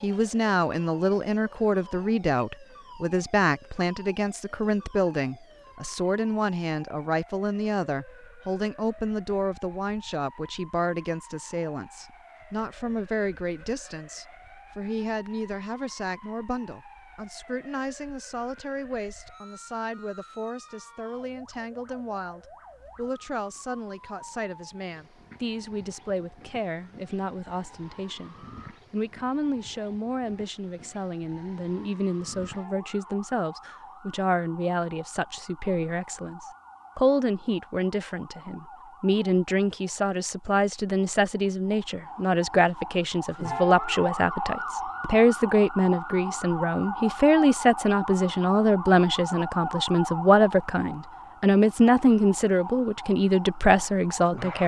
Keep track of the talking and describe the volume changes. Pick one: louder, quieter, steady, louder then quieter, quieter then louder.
quieter then louder.